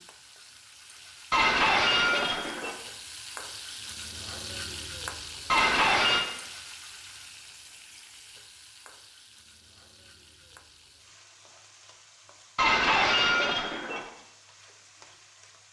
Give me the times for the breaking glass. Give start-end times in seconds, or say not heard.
1.3-2.8, 5.5-6.2, 12.6-14.0.